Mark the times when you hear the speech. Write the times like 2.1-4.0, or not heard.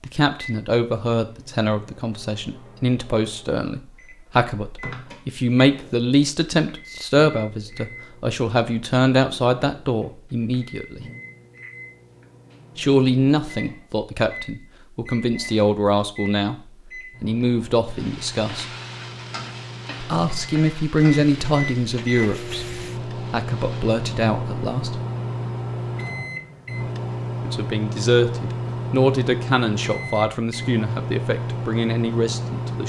0.0-11.1, 12.8-16.6, 17.2-18.6, 20.0-25.0, 27.4-32.8.